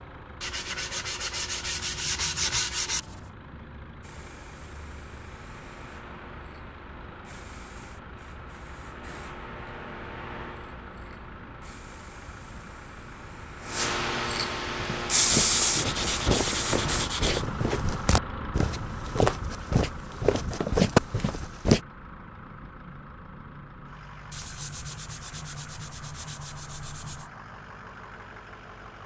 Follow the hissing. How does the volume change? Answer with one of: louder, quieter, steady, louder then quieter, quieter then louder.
louder.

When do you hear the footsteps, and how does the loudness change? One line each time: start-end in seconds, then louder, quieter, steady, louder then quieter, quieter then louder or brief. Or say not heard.
14.8-21.8 louder.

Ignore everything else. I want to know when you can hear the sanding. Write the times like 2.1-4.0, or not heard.
0.4-3.3, 15.4-17.4, 24.3-27.3.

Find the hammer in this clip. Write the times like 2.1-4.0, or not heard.
not heard.